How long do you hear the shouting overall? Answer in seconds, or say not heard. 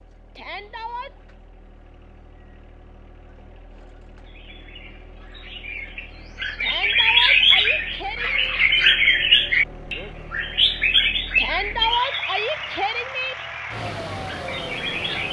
5 s.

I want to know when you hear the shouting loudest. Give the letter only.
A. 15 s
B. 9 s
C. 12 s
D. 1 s
C.